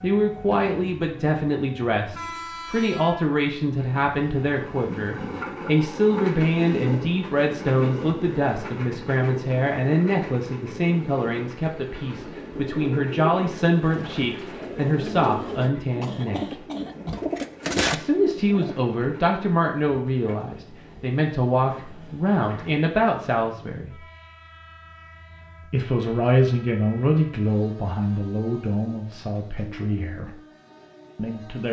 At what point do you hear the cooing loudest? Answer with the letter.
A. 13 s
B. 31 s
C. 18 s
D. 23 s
C.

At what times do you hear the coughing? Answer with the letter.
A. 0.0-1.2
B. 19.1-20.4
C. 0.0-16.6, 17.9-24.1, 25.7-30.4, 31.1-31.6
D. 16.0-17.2
D.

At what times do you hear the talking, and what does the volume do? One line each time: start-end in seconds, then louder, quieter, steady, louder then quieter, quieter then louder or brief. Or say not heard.
0.0-16.6 steady
17.9-24.1 steady
25.7-30.4 quieter
31.1-31.6 brief.